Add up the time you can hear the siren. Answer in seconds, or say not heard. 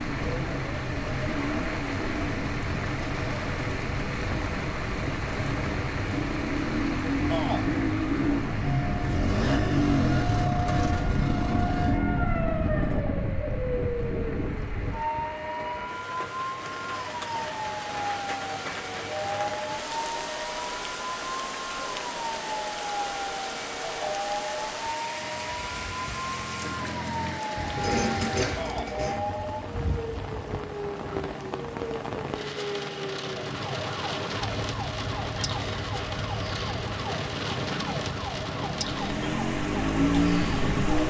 41 s.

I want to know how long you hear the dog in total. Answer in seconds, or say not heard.
not heard.